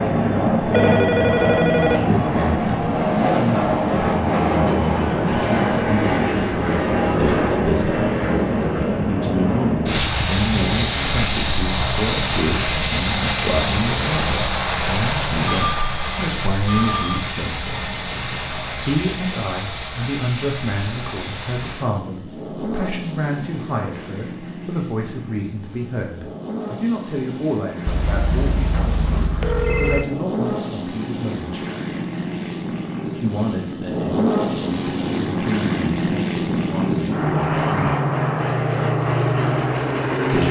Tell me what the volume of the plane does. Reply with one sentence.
The volume of the plane goes down, then up.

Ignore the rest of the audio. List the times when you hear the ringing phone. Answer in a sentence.
You can hear the ringing phone from 0.6 to 2.1 s, from 15.4 to 17.2 s and from 27.9 to 30.1 s.